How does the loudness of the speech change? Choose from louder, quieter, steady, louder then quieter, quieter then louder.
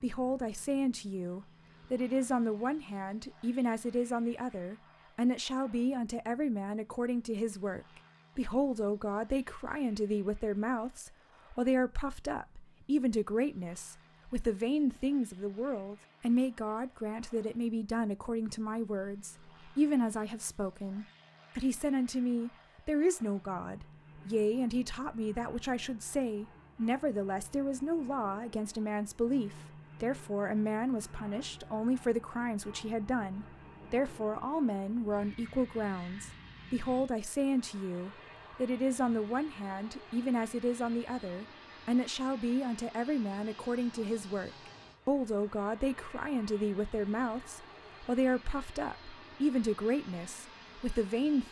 steady.